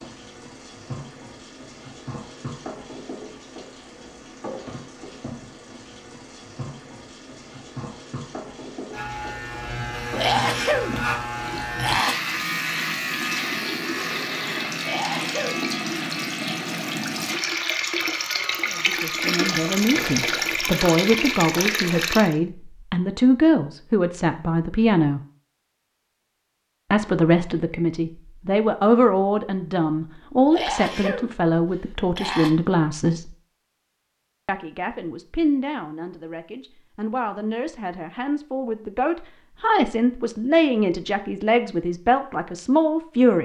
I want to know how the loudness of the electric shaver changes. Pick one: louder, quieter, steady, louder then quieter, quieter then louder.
quieter.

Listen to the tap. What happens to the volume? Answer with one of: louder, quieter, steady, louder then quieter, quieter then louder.
louder.